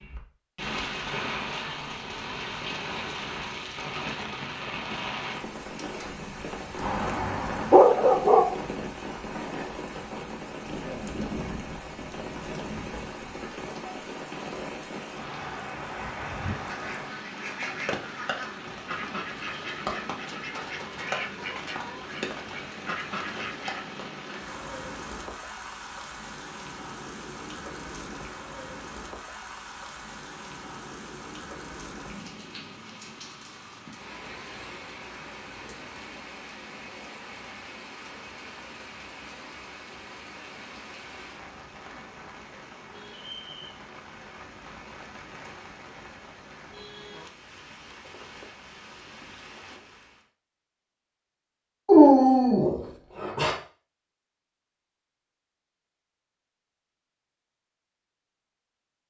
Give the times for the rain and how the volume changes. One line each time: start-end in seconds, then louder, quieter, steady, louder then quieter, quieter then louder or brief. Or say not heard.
0.0-50.2 quieter.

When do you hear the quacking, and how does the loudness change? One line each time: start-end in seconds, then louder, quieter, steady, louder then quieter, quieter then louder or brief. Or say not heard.
15.9-23.9 steady.